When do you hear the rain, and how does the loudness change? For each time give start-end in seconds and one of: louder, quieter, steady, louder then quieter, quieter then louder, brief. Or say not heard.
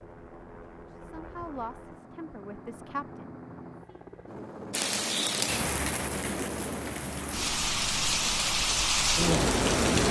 4.7-10.0 quieter then louder.